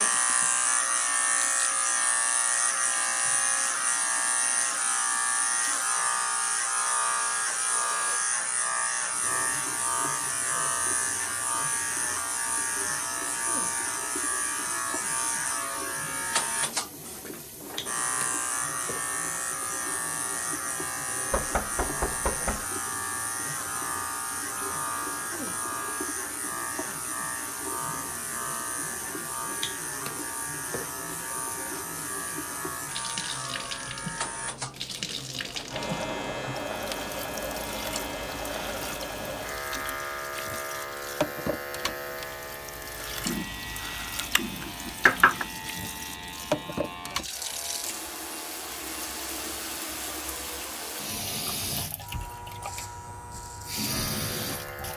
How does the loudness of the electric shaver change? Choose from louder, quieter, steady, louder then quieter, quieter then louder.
quieter.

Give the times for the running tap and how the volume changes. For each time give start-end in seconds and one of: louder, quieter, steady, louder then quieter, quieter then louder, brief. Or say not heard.
0.0-54.9 louder.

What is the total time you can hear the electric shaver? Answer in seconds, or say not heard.
55 s.